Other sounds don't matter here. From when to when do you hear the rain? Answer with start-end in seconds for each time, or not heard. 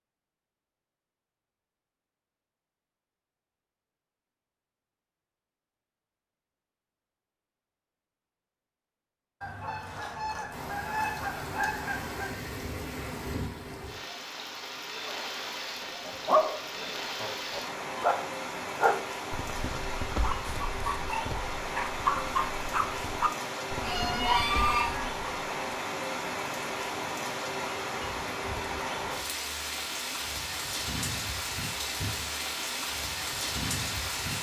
10.5-34.3.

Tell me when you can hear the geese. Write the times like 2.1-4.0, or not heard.
9.4-12.3, 23.8-25.1.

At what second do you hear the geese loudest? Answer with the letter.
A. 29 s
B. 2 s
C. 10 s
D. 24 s
D.